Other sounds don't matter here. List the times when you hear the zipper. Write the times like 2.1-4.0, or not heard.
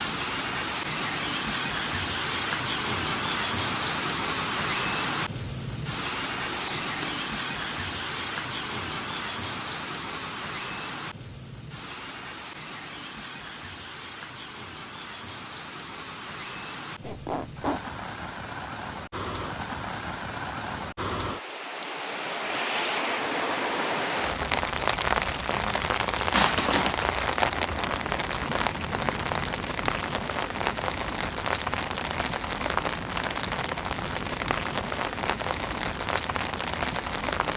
6.5-7.2, 17.0-17.8, 26.3-27.0.